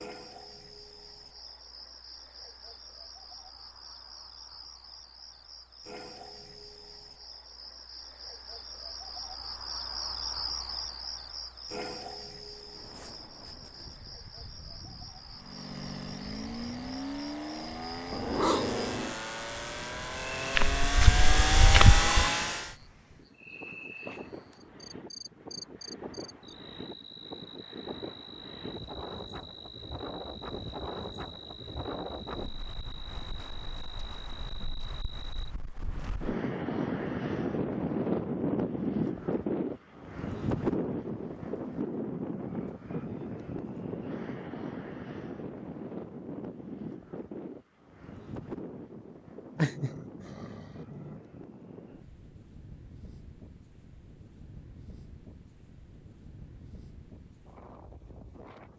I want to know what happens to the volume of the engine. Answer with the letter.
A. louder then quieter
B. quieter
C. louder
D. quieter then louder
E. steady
C.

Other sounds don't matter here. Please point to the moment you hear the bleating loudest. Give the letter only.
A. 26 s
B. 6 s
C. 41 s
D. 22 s
D.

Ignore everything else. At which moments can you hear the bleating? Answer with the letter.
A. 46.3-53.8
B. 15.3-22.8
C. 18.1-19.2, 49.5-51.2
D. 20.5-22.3
D.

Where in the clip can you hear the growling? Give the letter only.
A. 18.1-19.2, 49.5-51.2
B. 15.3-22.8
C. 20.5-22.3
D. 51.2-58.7
A.